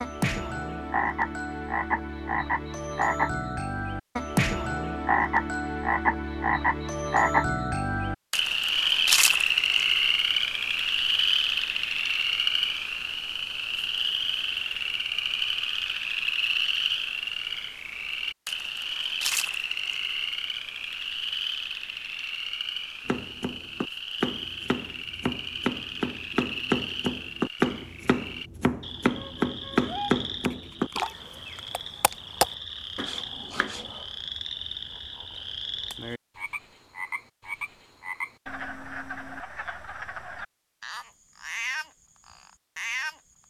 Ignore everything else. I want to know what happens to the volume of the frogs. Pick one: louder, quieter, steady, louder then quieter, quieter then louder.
quieter.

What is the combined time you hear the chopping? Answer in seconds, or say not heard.
11 s.